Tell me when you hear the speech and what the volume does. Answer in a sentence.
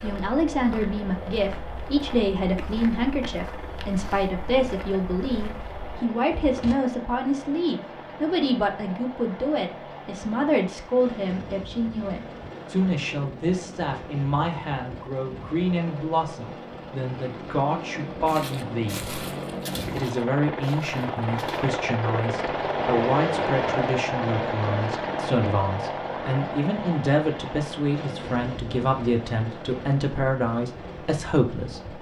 The speech can be heard from 0.0 to 19.1 s, at a steady volume; and from 19.9 to 31.9 s, at a steady volume.